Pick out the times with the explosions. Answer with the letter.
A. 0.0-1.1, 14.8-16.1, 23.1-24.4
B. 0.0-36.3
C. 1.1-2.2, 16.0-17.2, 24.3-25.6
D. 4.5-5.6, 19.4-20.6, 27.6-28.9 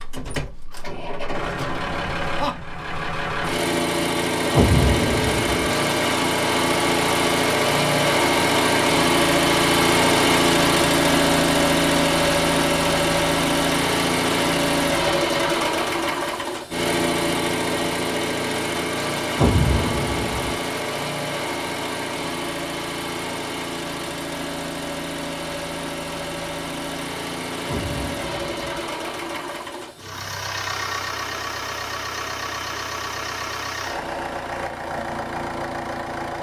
D.